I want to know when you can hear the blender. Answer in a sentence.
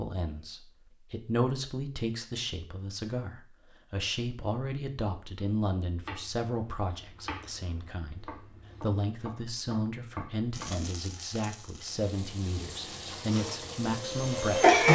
The blender can be heard from 13.3 to 14.8 s.